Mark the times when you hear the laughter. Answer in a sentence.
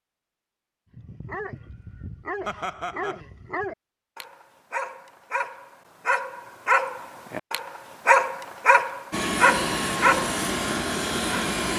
The laughter can be heard from 2.5 to 3.2 s.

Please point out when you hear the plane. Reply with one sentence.
The plane can be heard from 9.1 to 11.7 s.